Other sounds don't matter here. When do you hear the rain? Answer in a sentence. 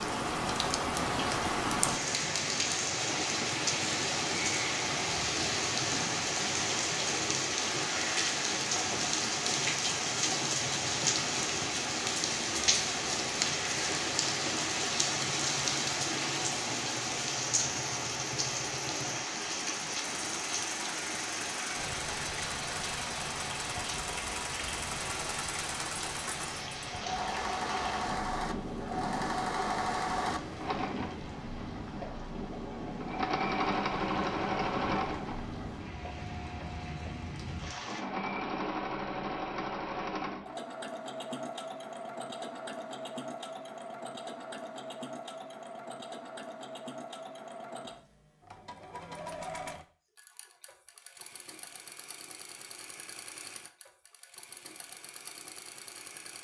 The rain can be heard from 0.0 to 38.0 s.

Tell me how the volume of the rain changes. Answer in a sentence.
The volume of the rain goes down.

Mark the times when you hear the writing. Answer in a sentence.
You can't hear the writing here.